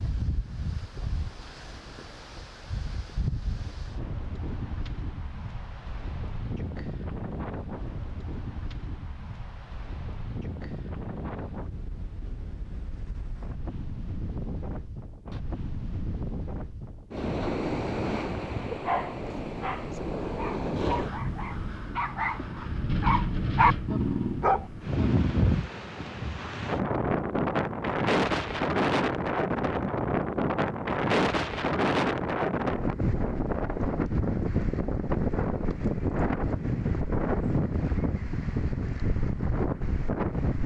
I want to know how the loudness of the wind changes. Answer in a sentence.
The volume of the wind goes up.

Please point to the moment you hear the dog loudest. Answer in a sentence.
The loudest moment of the dog is at 24 seconds.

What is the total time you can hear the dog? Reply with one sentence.
You can hear the dog for 7 seconds altogether.